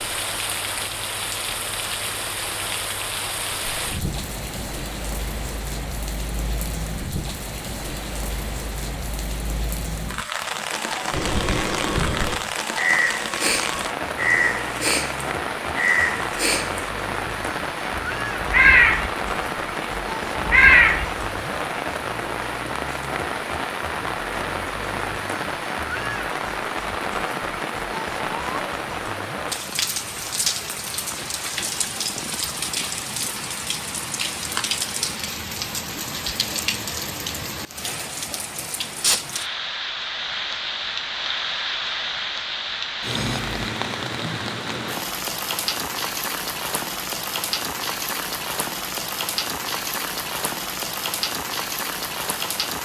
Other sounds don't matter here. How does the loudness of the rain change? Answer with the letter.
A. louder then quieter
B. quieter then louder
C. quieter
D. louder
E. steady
E.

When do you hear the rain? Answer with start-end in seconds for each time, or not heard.
0.0-52.8.